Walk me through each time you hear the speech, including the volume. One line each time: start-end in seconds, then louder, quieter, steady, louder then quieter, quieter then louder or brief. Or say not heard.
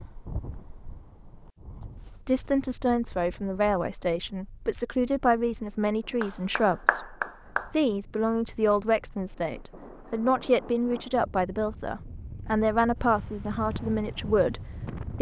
2.2-15.1 steady.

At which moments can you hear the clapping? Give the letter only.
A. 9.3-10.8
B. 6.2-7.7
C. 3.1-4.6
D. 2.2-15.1
B.